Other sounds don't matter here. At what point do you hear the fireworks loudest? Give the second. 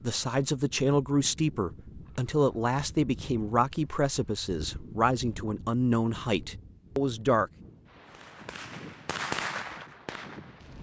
9 s.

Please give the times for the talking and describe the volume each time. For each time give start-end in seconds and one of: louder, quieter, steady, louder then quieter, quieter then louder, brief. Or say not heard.
0.0-7.5 steady.